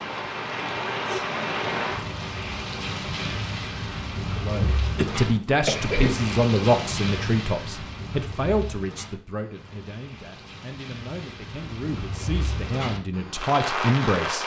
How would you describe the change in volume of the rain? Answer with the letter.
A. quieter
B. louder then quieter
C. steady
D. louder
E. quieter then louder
E.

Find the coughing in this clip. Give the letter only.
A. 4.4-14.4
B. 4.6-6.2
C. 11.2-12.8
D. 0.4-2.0
B.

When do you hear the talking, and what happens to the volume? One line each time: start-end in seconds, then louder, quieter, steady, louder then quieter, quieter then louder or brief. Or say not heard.
4.4-14.4 quieter then louder.